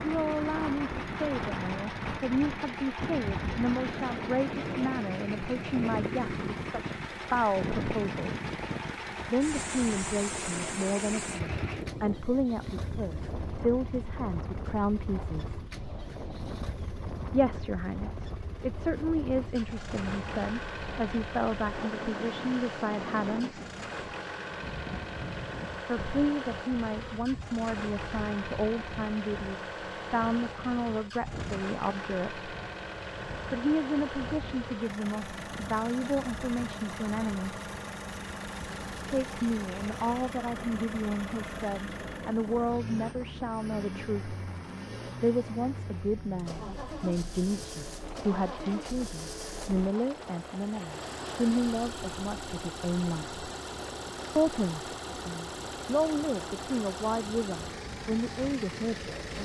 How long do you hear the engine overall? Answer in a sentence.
You can hear the engine for 59 seconds altogether.